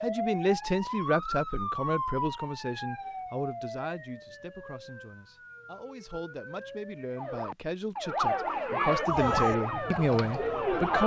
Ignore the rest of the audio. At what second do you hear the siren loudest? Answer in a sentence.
The volume of the siren peaks at 9 seconds.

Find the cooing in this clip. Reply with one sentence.
You can hear the cooing from 9.1 to 11.0 s.